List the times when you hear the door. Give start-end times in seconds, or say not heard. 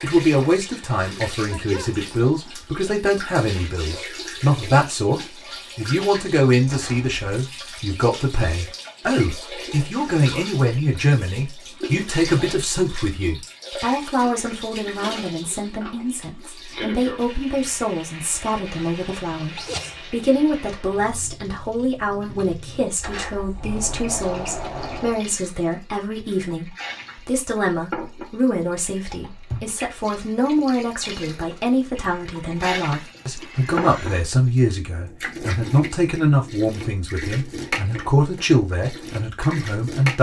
6.7-7.2, 22.9-25.2.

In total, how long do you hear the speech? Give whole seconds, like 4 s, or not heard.
40 s.